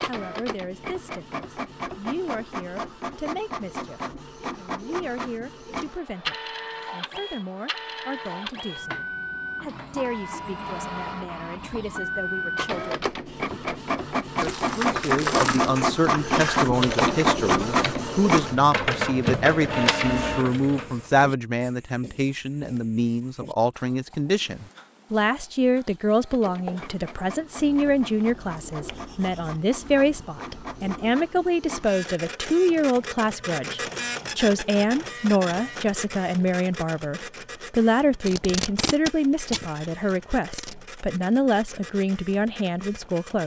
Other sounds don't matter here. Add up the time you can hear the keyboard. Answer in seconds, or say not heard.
6 s.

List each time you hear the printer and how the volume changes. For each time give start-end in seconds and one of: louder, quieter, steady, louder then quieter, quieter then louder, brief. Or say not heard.
0.0-21.3 louder
26.1-43.4 louder then quieter.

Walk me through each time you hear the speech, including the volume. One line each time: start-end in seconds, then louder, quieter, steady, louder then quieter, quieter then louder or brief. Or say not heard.
0.0-43.4 louder.